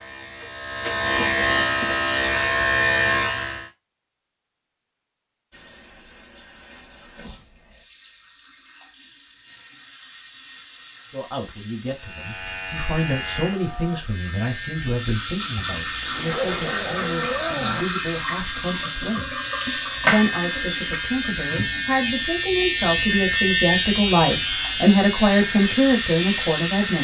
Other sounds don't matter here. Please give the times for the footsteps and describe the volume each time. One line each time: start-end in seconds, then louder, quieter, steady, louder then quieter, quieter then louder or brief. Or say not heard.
not heard.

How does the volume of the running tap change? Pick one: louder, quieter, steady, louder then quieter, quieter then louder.
louder.